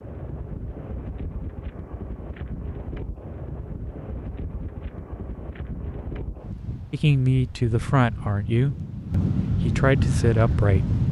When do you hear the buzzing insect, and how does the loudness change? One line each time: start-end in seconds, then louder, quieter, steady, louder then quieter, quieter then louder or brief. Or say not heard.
not heard.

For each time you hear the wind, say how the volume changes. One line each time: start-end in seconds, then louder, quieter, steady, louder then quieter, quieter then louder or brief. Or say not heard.
0.0-11.0 louder.